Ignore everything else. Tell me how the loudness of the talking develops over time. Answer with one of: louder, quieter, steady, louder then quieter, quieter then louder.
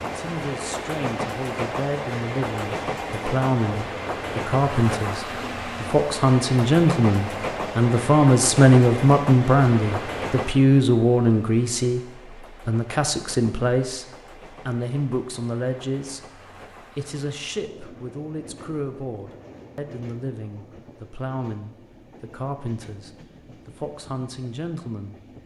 louder then quieter.